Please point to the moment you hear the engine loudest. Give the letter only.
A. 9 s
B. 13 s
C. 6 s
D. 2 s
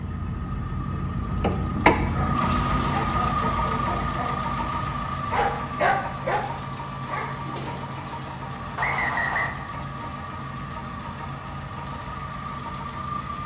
D.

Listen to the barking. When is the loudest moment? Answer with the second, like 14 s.
6 s.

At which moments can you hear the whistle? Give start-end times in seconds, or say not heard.
8.8-9.6.